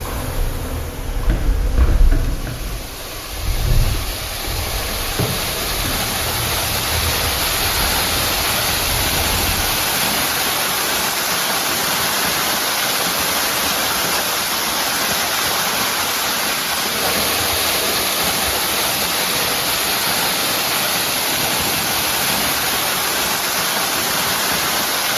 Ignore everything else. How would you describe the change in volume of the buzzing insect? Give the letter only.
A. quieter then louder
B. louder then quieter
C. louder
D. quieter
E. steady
D.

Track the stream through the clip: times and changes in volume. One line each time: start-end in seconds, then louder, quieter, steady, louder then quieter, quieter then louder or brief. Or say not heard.
0.0-25.1 louder.